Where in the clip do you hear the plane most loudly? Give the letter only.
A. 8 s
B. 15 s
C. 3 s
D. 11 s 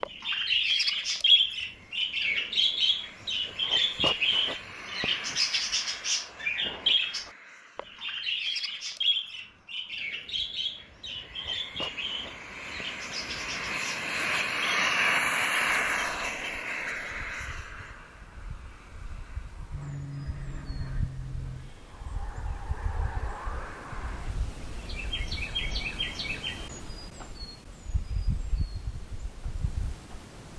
B.